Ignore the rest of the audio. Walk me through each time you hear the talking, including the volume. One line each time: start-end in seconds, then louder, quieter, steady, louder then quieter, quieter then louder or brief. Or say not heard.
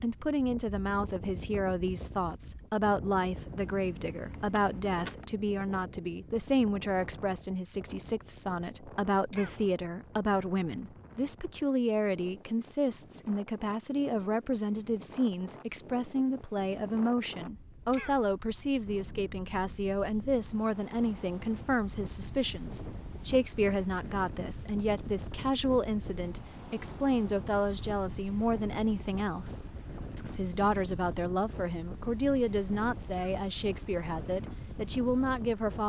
0.0-35.8 steady.